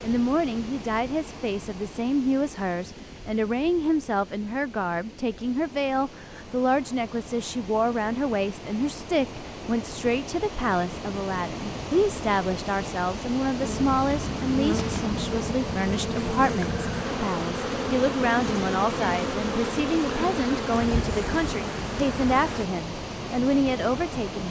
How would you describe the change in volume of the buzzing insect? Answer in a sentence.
The volume of the buzzing insect stays about the same.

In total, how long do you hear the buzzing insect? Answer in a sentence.
You can hear the buzzing insect for 9 seconds altogether.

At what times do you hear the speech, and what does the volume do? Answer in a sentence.
The speech can be heard from 0.0 to 24.4 s, at a steady volume.